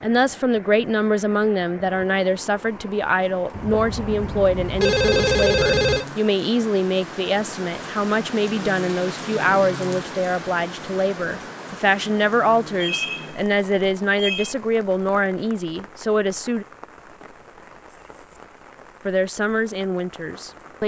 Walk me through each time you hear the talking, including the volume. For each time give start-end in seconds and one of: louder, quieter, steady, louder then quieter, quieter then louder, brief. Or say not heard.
0.0-16.6 steady
19.1-20.8 brief.